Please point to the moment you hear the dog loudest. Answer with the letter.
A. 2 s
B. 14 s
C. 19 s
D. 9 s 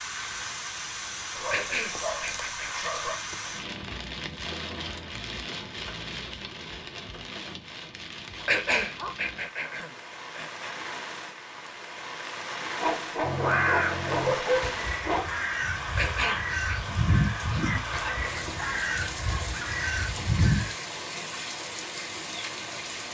B.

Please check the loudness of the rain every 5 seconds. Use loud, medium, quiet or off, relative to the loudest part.
loud, medium, loud, loud, loud.